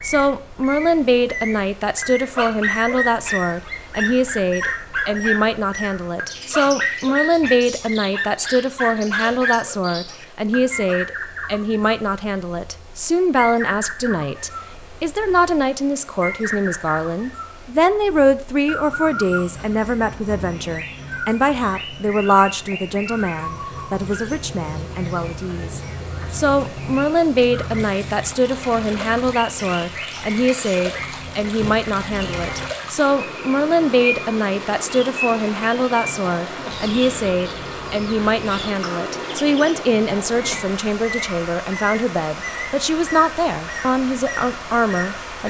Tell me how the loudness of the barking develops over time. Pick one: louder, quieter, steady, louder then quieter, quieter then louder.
steady.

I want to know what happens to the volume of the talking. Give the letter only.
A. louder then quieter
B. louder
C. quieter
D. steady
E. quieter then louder
D.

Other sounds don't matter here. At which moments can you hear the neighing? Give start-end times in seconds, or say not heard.
not heard.